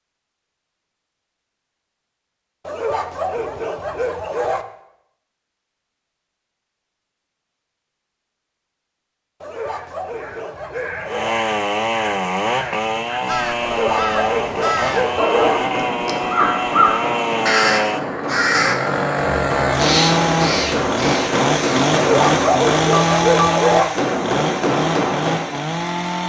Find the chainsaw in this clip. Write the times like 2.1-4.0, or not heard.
11.1-26.2.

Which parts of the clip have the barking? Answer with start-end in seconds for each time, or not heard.
2.6-4.7, 9.4-11.4, 13.6-15.6, 21.9-23.9.